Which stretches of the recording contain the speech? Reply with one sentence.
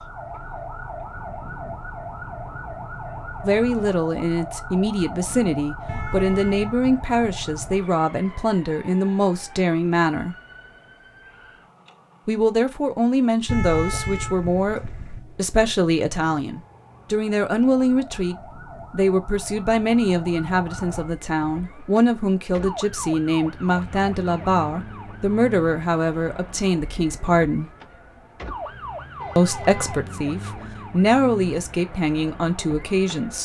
The speech can be heard from 3.4 to 10.3 s, from 12.2 to 27.7 s and from 29.4 to 33.3 s.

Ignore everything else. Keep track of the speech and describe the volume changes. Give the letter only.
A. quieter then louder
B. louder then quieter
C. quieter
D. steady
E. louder
D.